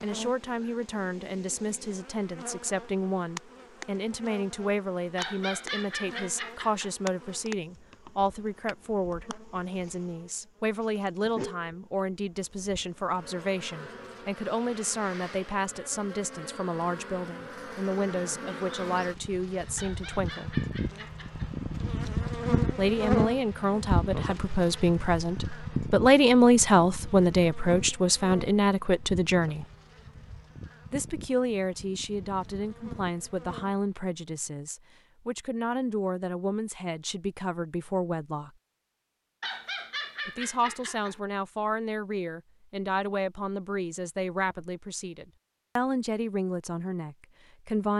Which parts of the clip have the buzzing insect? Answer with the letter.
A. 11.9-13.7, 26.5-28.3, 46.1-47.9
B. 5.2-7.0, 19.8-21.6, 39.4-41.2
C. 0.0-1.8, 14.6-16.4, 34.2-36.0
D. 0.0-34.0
D.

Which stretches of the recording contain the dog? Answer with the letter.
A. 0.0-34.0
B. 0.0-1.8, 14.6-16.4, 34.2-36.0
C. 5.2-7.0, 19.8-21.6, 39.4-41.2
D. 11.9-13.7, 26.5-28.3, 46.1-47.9
C.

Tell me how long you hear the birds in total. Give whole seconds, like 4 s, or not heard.
not heard.